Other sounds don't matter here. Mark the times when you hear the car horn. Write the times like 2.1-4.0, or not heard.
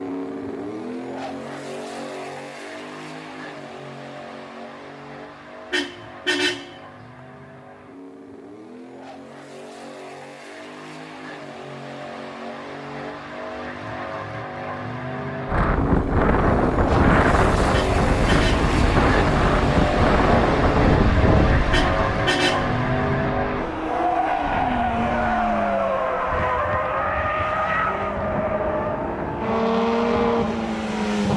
5.7-6.8, 17.7-18.6, 21.7-22.8.